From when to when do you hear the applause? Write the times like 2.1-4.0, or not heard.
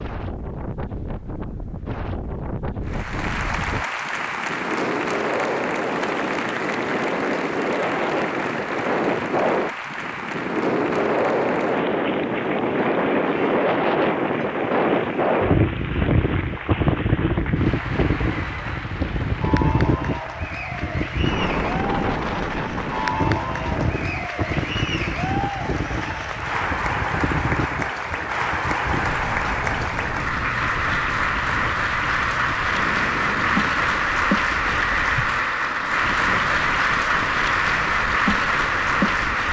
2.9-39.4.